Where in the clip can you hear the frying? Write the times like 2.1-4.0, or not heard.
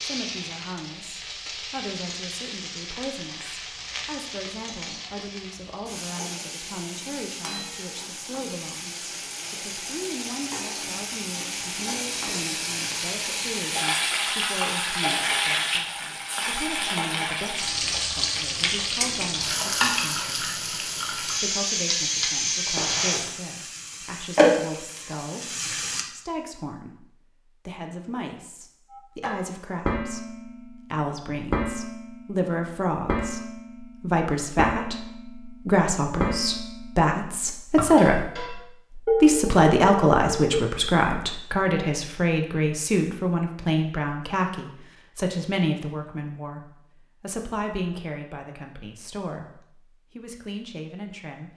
0.0-26.1.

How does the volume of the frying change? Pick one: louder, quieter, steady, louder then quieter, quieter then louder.
louder.